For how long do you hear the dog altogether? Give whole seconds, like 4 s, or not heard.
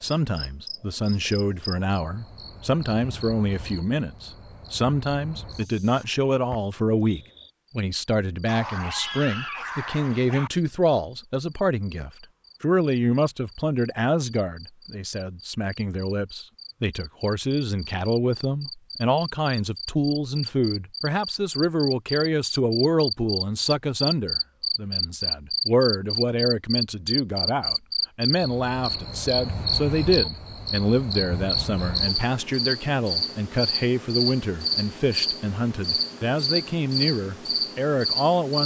2 s.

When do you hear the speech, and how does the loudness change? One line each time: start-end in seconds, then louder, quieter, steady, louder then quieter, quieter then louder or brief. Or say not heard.
0.0-38.6 steady.